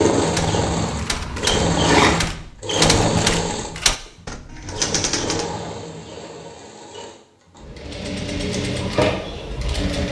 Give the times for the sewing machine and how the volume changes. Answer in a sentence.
You can hear the sewing machine from 0.0 to 10.0 s, getting quieter then louder.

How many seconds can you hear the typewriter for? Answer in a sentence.
The typewriter can be heard for 5 seconds in total.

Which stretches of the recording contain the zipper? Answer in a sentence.
You can hear the zipper from 0.7 to 2.2 s.